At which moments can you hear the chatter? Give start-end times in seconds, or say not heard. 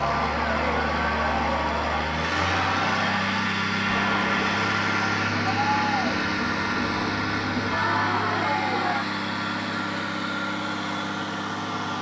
0.0-9.1.